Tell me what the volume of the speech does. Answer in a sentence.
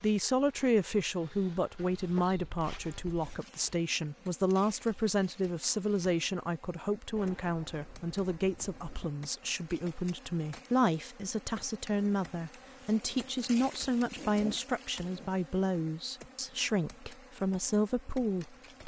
The loudness of the speech stays about the same.